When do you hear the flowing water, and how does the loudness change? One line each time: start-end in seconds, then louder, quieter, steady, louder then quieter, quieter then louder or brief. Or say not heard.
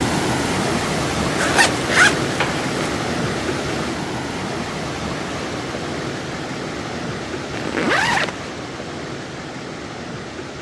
0.0-10.5 quieter.